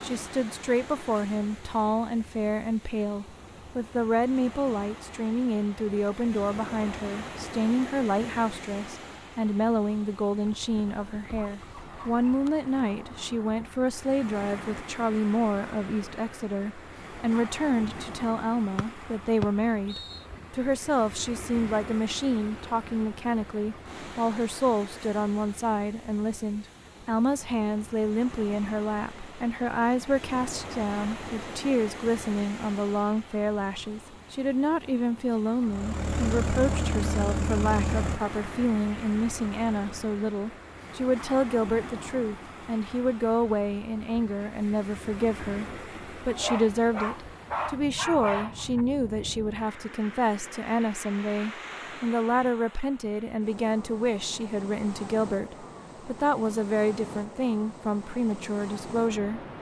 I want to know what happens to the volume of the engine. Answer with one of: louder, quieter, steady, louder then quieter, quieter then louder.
quieter.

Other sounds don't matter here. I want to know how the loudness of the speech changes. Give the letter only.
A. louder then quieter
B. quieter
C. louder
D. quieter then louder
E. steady
E.